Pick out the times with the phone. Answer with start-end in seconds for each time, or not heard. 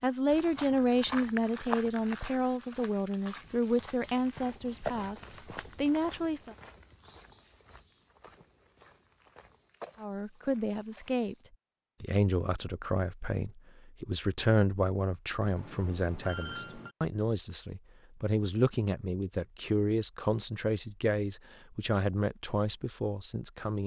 15.6-16.9.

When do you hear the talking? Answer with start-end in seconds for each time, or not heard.
0.0-6.5, 10.0-11.3, 12.0-23.8.